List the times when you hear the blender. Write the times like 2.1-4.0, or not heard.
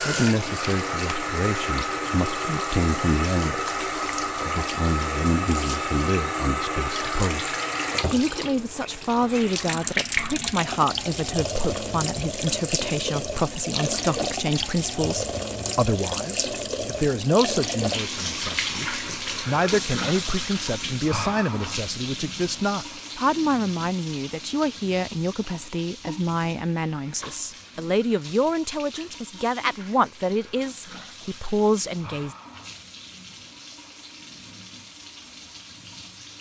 not heard.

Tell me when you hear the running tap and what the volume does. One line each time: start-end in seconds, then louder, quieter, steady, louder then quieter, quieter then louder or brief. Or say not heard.
0.0-36.3 quieter.